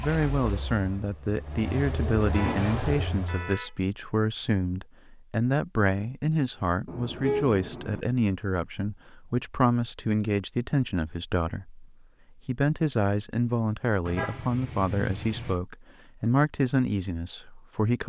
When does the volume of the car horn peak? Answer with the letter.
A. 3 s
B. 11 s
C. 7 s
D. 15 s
C.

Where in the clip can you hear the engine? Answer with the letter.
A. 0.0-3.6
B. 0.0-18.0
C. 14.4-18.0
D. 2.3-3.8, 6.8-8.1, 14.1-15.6
A.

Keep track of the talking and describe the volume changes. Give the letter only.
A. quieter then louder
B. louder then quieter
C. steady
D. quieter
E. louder
C.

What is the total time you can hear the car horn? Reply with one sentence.
The car horn can be heard for 4 seconds in total.